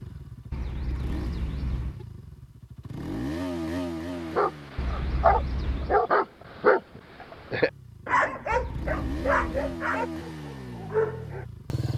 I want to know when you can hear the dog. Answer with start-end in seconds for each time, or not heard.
4.1-11.4.